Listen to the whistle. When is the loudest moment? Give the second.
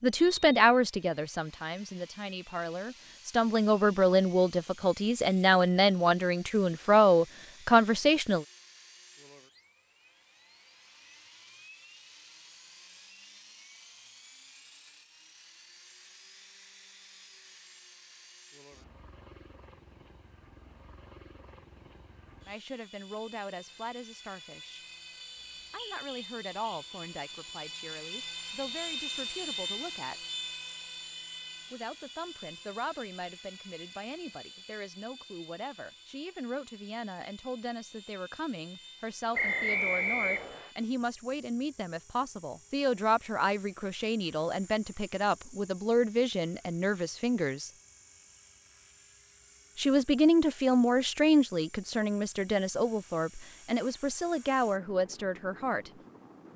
40 s.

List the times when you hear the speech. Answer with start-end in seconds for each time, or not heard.
0.0-8.4, 22.4-24.8, 25.7-30.2, 31.7-47.7, 49.8-55.9.